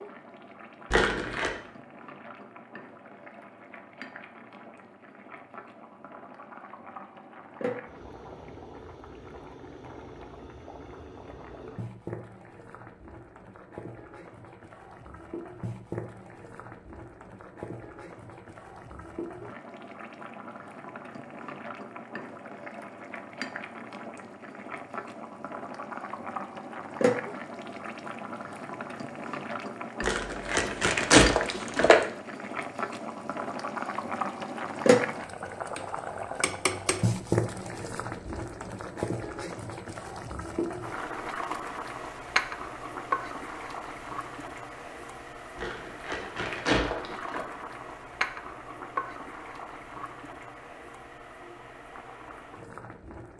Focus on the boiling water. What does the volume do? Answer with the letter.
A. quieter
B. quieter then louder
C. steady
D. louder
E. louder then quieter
E.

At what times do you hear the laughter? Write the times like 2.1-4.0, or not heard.
not heard.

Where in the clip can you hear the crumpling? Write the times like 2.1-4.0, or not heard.
0.9-1.5, 30.0-32.0, 45.5-47.5.